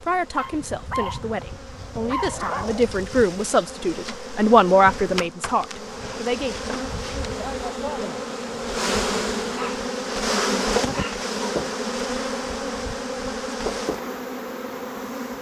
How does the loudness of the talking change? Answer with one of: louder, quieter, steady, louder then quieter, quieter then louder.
louder then quieter.